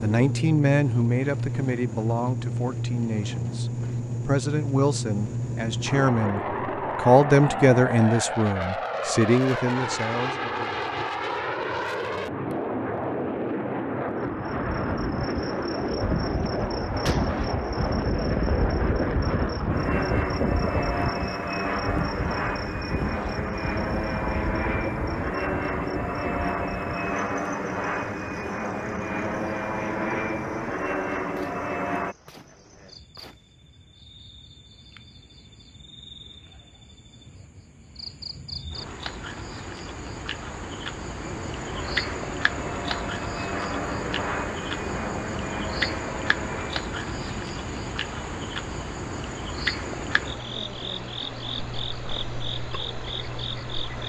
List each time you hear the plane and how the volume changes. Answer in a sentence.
You can hear the plane from 0.0 to 32.1 s, at a steady volume; and from 41.2 to 54.0 s, getting quieter.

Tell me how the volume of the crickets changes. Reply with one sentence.
The loudness of the crickets goes down, then up.